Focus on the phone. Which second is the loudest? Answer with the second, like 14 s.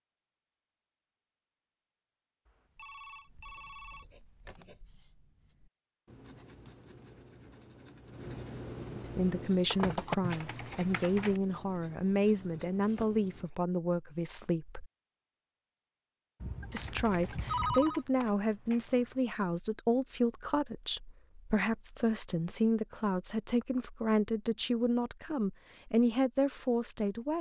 18 s.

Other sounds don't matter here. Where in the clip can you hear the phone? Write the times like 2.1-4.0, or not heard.
2.5-4.7, 16.4-18.0.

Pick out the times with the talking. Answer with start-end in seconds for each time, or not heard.
9.2-14.8, 16.7-27.3.